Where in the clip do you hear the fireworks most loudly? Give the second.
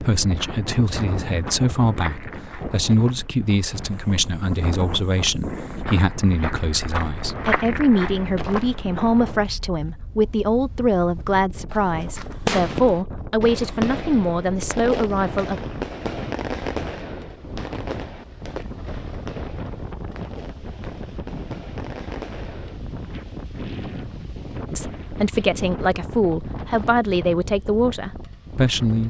13 s.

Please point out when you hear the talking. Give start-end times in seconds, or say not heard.
0.0-15.6, 24.7-29.0.